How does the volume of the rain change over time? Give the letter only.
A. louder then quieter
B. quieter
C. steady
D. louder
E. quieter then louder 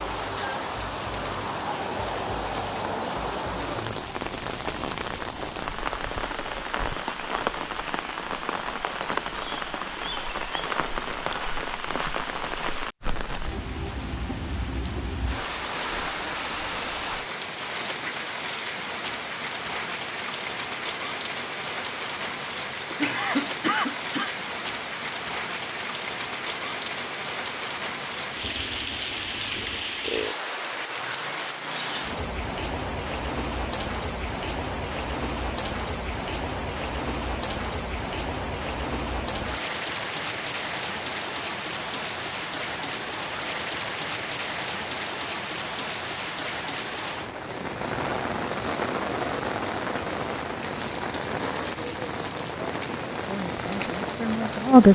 C.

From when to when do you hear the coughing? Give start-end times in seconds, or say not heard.
22.9-24.4.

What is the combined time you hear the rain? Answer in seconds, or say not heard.
55 s.